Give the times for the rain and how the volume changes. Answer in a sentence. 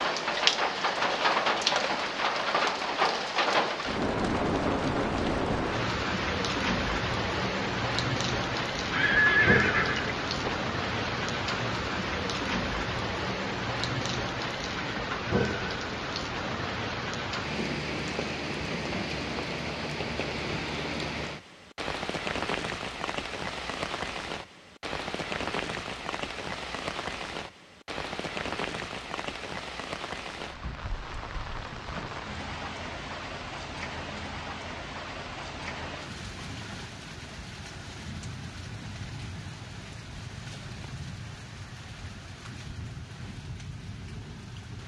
The rain can be heard from 0.0 to 44.8 s, getting quieter.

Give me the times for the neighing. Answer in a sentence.
You can hear the neighing from 8.9 to 10.6 s.